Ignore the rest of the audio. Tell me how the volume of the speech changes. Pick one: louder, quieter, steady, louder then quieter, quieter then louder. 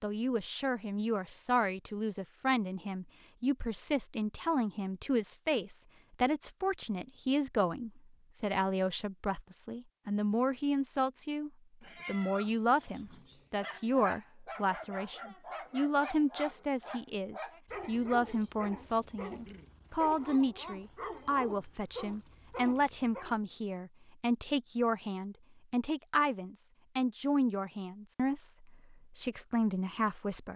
steady.